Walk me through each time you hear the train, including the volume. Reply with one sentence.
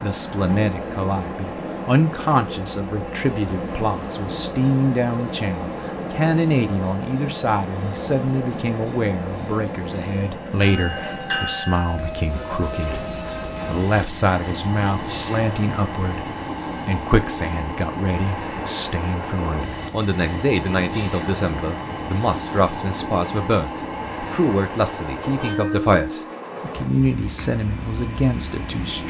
You can hear the train from 0.0 to 29.0 s, at a steady volume.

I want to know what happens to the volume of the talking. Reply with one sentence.
The loudness of the talking stays about the same.